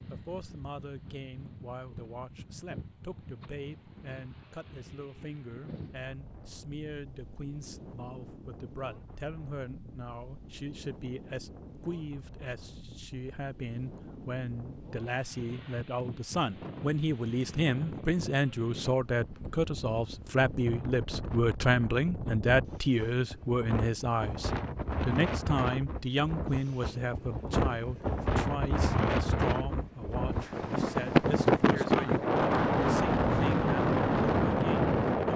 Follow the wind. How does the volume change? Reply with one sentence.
The loudness of the wind goes up.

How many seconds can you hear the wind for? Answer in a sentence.
You can hear the wind for 35 seconds altogether.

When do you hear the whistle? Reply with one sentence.
You can't hear the whistle here.